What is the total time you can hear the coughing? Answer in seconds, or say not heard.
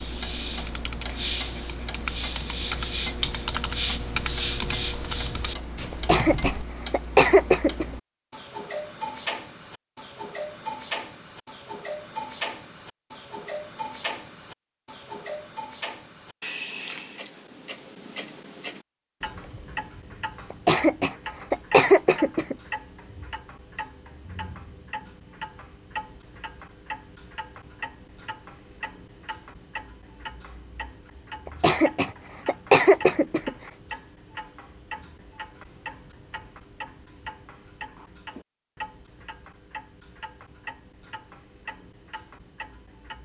6 s.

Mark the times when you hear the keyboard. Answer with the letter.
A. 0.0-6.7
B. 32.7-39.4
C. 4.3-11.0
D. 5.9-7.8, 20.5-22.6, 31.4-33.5
A.